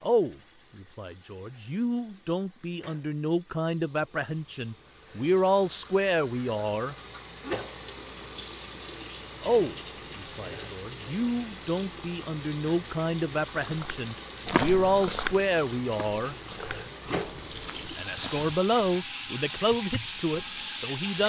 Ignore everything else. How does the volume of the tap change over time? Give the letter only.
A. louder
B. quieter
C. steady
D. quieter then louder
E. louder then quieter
A.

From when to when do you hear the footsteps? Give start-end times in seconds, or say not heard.
13.6-18.6.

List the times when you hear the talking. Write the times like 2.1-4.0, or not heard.
0.0-7.0, 9.4-16.4, 17.9-21.2.